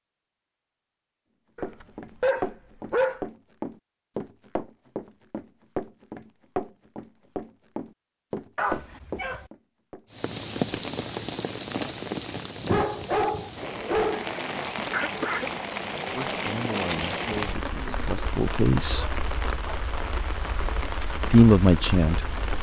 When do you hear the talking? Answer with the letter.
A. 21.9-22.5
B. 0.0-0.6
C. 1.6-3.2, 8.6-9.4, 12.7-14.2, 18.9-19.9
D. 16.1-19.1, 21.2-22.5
D.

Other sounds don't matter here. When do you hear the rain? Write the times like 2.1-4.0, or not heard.
10.1-22.5.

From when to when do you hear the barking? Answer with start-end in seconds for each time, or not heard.
1.6-3.2, 8.6-9.4, 12.7-14.2, 18.9-19.9.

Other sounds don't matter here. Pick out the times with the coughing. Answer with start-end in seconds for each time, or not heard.
14.9-15.5.